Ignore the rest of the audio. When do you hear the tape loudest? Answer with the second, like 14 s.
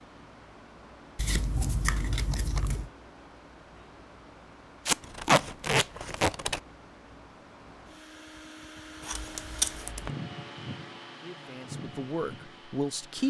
5 s.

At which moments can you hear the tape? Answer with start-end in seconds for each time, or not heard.
2.2-2.7, 4.8-6.3, 9.1-10.1.